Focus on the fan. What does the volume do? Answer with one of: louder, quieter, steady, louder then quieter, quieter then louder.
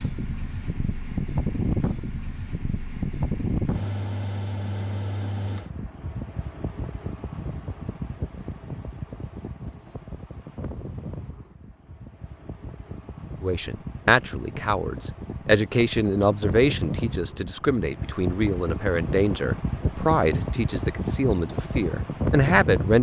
quieter then louder.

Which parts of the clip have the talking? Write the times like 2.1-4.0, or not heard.
13.4-22.9.